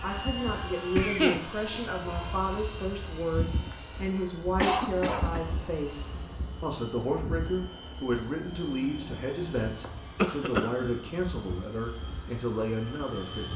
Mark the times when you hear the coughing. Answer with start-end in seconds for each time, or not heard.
0.9-1.9, 4.5-5.4, 10.2-10.9.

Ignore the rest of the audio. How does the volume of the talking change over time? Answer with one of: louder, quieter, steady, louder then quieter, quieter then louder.
steady.